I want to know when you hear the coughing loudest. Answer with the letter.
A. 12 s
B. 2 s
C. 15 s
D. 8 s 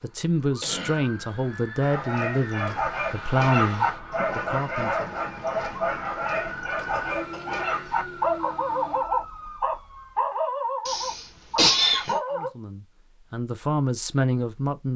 A.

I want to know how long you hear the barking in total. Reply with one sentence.
You can hear the barking for 11 seconds altogether.